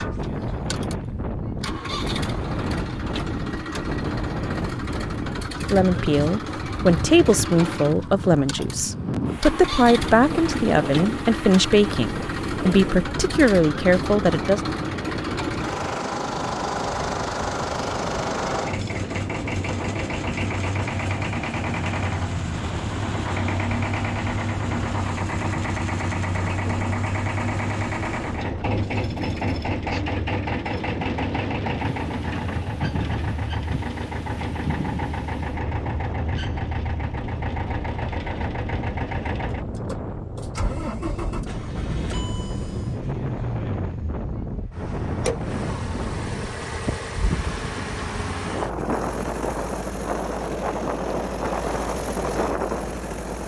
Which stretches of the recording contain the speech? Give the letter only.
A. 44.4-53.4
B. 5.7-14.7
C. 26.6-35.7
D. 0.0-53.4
B.